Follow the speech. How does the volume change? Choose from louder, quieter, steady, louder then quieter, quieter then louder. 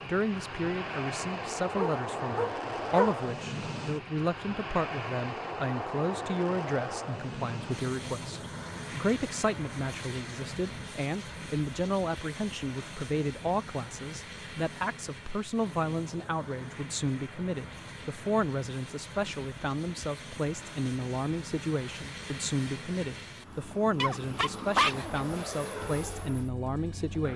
steady.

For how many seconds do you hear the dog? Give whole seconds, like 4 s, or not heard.
3 s.